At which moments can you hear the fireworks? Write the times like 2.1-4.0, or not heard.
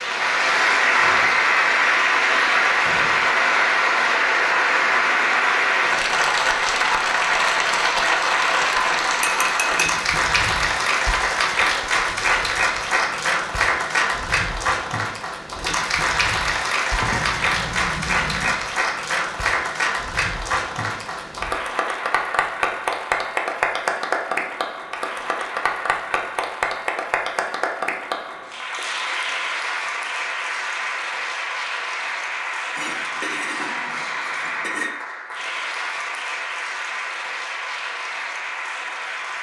not heard.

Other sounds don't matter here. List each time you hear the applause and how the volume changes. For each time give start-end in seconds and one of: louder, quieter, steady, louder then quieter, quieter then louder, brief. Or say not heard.
0.0-39.3 quieter.